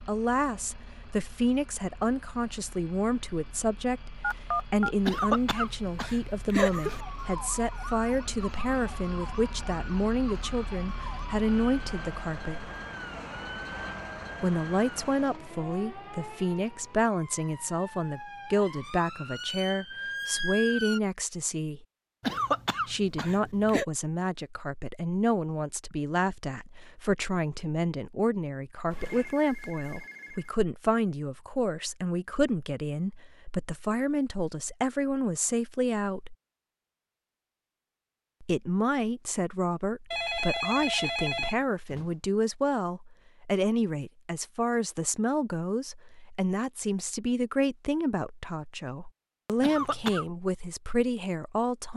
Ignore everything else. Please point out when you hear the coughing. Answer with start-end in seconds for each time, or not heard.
5.0-7.0, 22.2-23.9, 49.6-50.2.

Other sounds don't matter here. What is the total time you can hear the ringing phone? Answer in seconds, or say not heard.
4 s.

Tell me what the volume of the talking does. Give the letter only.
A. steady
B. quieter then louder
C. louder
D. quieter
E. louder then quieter
A.